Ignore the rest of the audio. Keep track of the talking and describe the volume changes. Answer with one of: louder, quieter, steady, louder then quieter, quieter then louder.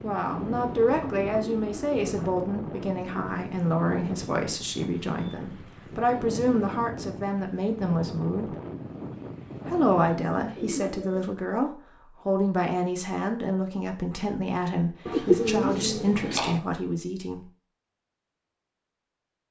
steady.